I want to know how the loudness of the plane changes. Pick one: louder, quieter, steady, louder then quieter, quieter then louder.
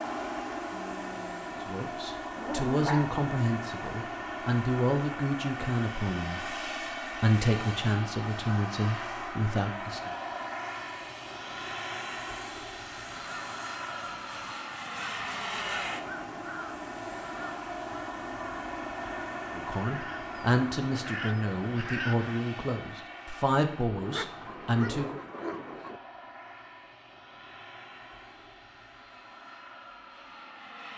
quieter.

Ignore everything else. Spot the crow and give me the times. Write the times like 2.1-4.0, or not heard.
13.1-22.4.